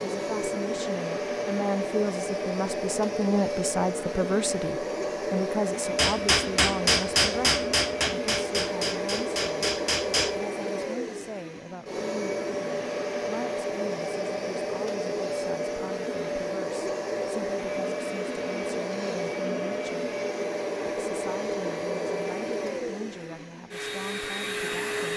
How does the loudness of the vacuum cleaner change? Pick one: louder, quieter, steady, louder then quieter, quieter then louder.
steady.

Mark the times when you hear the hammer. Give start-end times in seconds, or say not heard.
6.0-10.3.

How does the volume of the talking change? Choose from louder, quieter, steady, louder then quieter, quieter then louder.
quieter.